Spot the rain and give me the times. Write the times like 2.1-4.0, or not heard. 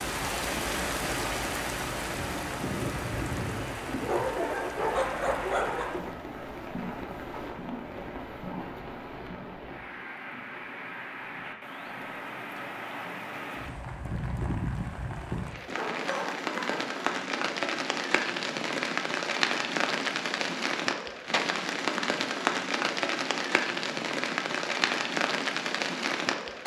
0.0-26.6.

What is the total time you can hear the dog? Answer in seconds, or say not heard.
3 s.